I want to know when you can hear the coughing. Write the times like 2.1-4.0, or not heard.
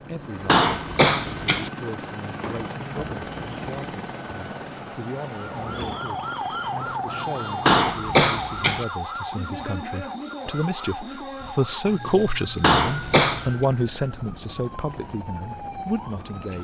0.5-1.7, 7.7-8.8, 12.6-13.5.